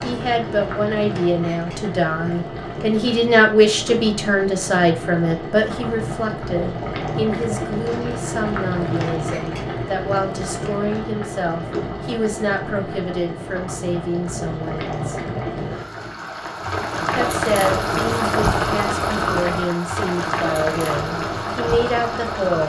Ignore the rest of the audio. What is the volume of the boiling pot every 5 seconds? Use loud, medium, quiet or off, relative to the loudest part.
medium, loud, medium, loud, loud.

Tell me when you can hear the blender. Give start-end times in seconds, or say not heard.
not heard.